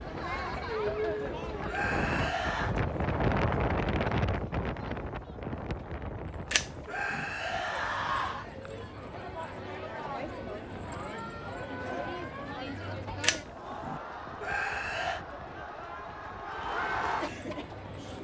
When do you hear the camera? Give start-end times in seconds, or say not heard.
6.5-7.2, 13.2-14.0.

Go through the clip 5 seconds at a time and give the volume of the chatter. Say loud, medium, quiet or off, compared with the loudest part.
loud, medium, loud, loud.